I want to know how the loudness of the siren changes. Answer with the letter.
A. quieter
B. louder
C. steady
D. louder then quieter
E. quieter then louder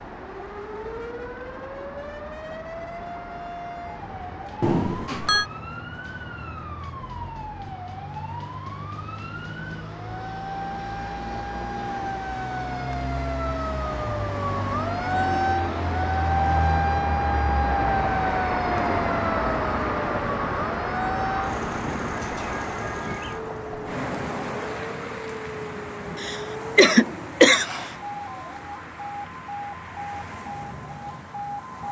D.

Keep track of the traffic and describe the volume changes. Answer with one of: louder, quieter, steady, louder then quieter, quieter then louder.
louder then quieter.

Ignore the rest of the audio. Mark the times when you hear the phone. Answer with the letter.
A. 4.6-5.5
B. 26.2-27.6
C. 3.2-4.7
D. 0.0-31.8
A.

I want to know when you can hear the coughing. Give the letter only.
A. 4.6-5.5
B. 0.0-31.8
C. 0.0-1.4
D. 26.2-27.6
D.